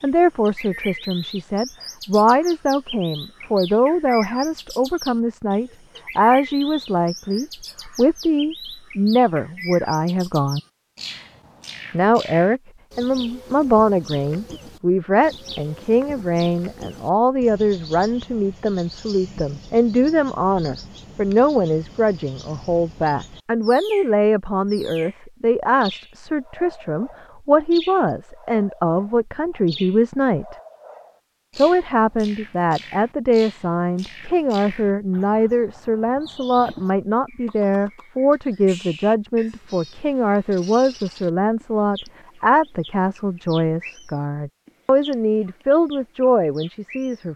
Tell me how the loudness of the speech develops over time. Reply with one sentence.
The volume of the speech stays about the same.